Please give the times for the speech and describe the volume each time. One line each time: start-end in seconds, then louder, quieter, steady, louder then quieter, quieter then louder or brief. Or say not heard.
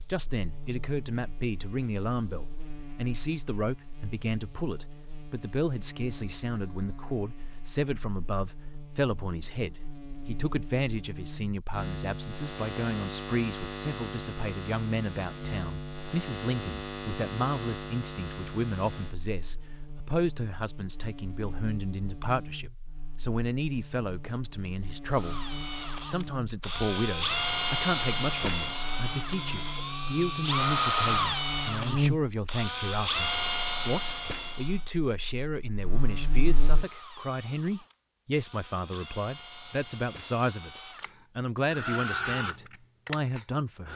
0.0-43.9 steady.